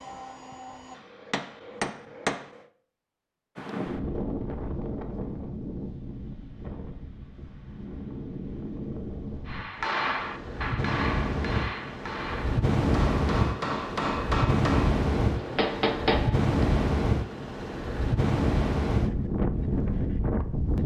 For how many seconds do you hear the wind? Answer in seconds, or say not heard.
17 s.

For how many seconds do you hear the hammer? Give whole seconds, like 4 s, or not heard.
10 s.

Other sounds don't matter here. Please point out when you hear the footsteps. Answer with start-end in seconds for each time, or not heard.
not heard.